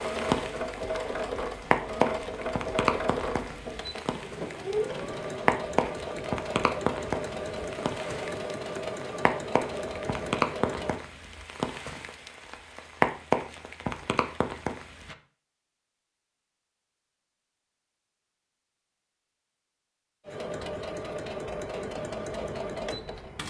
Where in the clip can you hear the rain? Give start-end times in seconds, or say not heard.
0.0-15.2.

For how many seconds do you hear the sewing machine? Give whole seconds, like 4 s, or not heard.
14 s.